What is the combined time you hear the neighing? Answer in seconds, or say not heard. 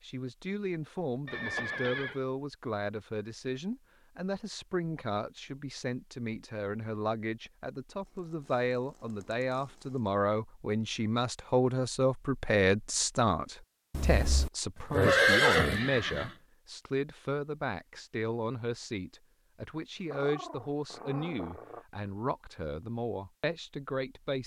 3 s.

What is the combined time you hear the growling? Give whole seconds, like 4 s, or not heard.
2 s.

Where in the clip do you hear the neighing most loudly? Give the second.
15 s.